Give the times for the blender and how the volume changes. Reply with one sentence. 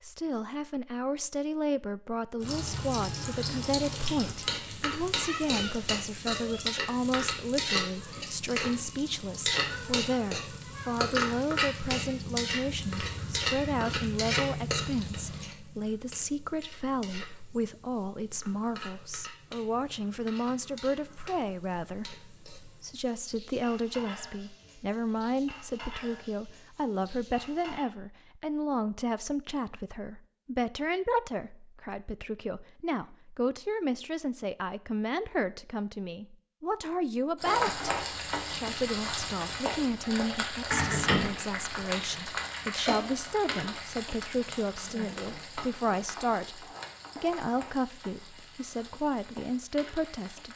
You can't hear the blender here.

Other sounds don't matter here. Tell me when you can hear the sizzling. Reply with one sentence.
You can hear the sizzling from 2.4 to 27.9 s and from 37.4 to 50.5 s.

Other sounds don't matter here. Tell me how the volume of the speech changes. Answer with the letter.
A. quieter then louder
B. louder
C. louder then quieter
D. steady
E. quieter
D.